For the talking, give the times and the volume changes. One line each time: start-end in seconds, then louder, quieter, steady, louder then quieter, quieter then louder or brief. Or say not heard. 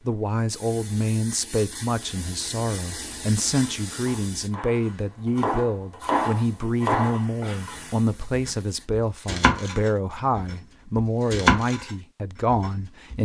0.1-13.2 steady.